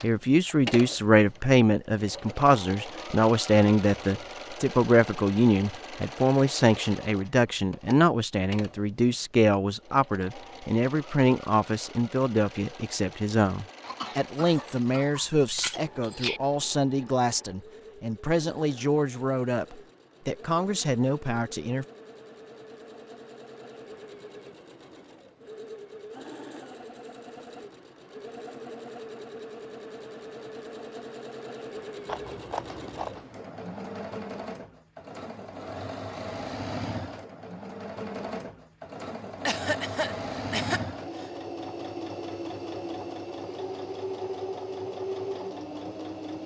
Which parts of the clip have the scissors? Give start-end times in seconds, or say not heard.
14.5-16.4, 32.0-33.3.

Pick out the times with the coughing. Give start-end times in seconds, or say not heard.
13.8-15.3, 39.5-41.3.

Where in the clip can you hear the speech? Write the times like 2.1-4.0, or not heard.
0.0-21.9.